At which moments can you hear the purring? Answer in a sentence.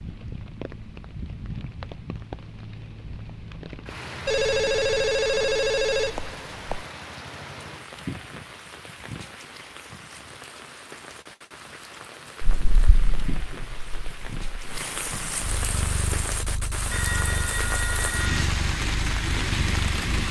The purring can be heard from 12.4 to 20.1 s.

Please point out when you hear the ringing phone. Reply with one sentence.
You can hear the ringing phone from 4.2 to 6.8 s and from 16.9 to 18.4 s.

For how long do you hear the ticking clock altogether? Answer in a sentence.
The ticking clock can't be heard in this clip.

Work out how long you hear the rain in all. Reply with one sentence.
You can hear the rain for 20 seconds altogether.